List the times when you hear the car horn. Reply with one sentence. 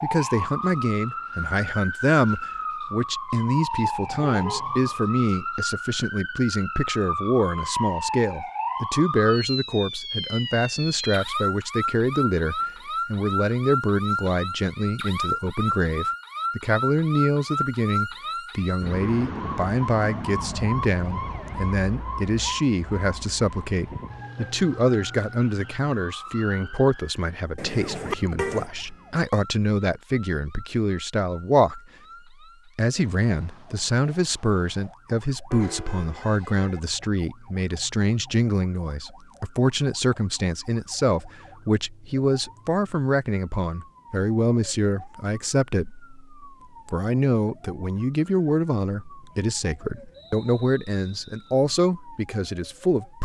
You can hear the car horn from 4.0 to 5.0 s, from 27.6 to 28.6 s and from 35.5 to 36.8 s.